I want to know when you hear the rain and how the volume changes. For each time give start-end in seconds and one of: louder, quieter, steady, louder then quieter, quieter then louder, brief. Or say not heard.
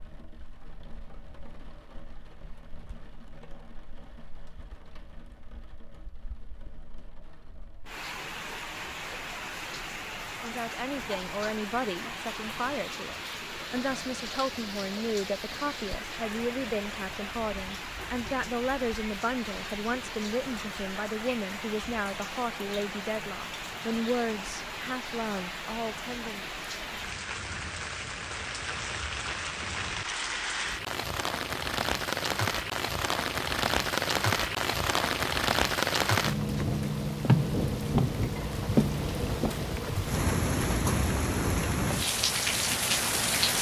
0.0-43.5 louder.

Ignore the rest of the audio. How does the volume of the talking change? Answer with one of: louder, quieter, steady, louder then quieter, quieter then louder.
steady.